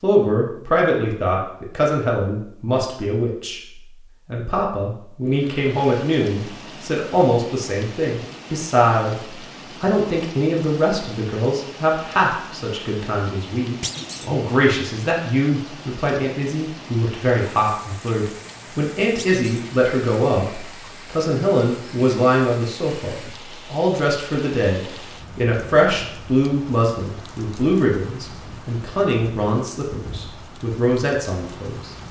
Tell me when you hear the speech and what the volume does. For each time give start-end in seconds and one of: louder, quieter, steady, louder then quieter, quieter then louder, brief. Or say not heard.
0.0-31.9 steady.